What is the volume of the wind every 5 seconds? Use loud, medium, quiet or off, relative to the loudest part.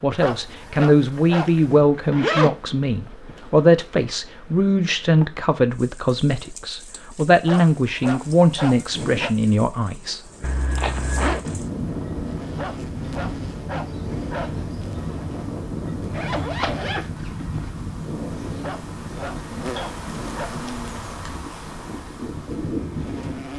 off, off, loud, loud, loud.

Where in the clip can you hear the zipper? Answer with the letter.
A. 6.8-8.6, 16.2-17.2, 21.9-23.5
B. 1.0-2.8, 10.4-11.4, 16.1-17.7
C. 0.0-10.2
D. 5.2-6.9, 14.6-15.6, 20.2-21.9
B.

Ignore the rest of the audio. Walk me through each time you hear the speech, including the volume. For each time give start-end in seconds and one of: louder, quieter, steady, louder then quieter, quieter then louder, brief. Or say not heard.
0.0-10.2 steady.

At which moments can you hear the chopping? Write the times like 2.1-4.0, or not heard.
not heard.